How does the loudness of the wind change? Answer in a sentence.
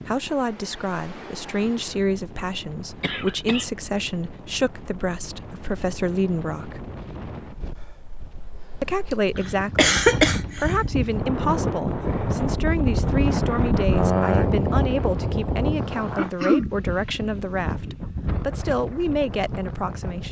The volume of the wind goes up, then down.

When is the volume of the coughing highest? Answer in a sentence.
The volume of the coughing peaks at 10 seconds.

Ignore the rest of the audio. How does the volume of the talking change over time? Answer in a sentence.
The volume of the talking stays about the same.